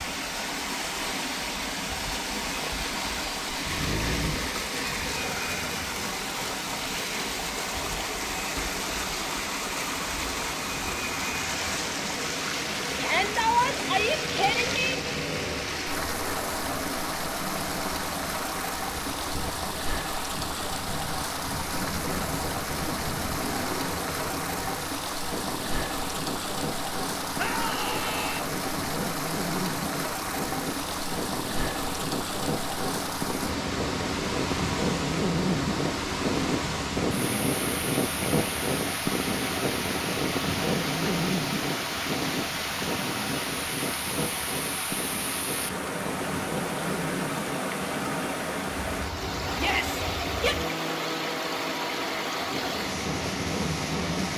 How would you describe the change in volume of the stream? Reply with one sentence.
The loudness of the stream stays about the same.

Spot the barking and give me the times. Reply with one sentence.
The barking can be heard from 3.5 to 4.5 s.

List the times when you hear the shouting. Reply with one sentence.
You can hear the shouting from 12.9 to 14.9 s, from 27.4 to 28.4 s and from 49.5 to 50.5 s.